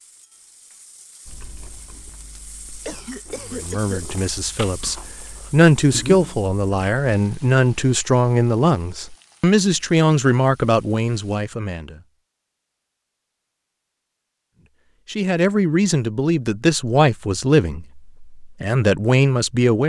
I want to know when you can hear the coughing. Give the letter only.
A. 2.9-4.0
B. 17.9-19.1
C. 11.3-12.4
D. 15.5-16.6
A.